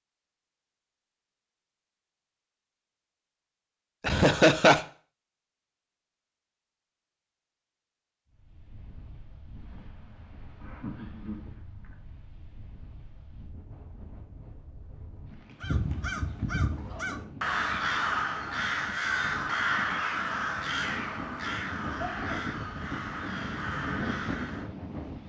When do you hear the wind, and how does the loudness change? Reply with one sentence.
You can hear the wind from 8.3 to 25.2 s, getting louder.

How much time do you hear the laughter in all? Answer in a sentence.
The laughter can be heard for 3 seconds in total.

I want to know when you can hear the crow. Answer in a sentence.
The crow can be heard from 15.6 to 24.7 s.